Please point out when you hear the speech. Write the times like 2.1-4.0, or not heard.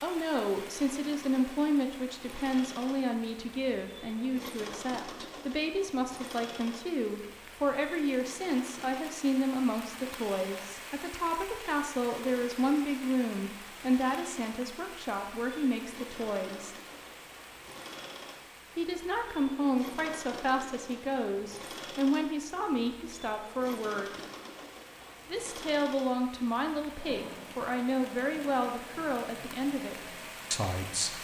0.0-16.8, 18.8-24.2, 25.3-31.1.